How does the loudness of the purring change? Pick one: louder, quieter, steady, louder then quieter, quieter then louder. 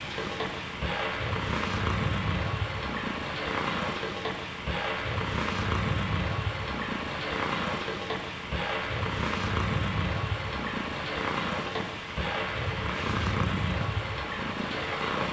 steady.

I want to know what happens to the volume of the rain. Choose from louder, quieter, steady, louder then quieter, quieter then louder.
steady.